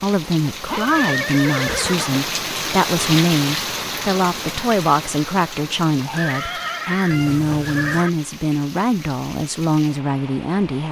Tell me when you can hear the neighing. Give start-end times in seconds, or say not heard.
0.7-2.2, 6.1-8.1.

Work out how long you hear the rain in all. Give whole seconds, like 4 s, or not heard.
11 s.